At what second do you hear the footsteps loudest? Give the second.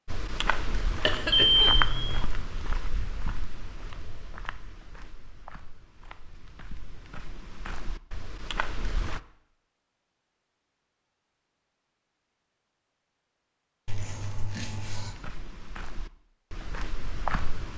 2 s.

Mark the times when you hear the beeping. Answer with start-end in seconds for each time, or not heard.
1.3-2.2.